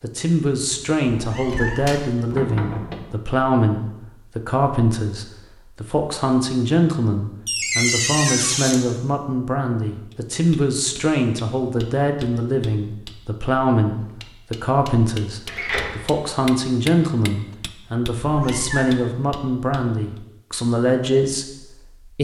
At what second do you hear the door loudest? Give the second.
8 s.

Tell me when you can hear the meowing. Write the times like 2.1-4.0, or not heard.
1.1-1.9, 18.2-18.9.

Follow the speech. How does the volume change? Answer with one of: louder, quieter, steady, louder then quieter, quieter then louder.
steady.